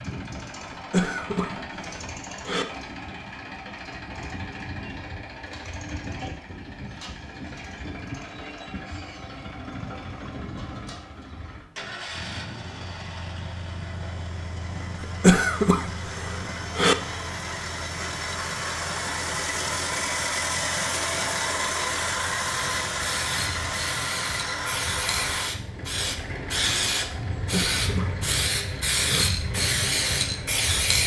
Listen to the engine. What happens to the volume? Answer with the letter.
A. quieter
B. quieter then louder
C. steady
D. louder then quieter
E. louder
D.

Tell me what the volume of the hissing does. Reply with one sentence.
The loudness of the hissing goes up.